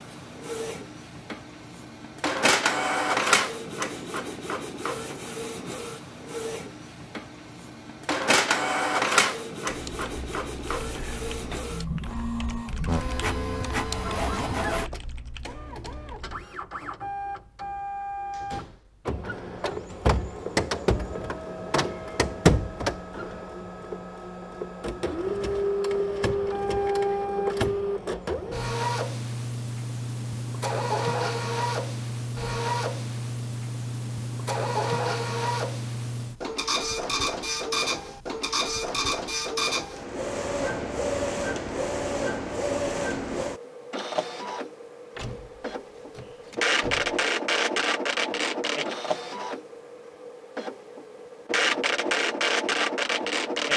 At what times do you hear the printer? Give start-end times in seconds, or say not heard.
0.0-53.7.